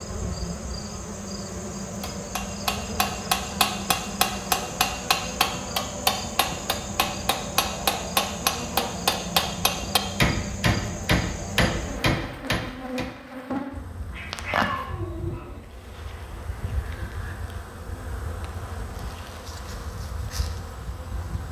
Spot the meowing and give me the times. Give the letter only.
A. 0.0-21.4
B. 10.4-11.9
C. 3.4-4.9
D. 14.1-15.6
D.